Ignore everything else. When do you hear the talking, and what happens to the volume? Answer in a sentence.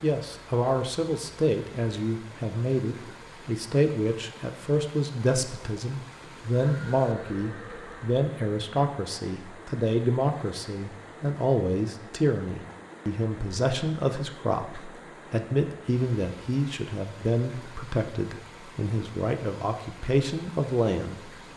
You can hear the talking from 0.0 to 21.3 s, at a steady volume.